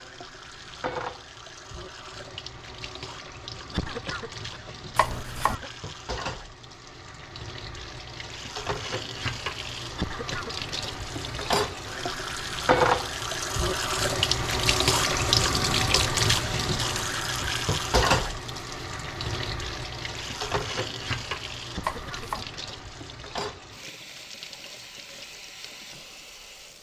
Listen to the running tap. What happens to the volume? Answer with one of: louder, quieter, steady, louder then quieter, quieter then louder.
louder then quieter.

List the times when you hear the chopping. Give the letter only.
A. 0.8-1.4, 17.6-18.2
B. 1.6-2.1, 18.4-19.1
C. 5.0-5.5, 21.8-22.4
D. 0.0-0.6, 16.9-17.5
C.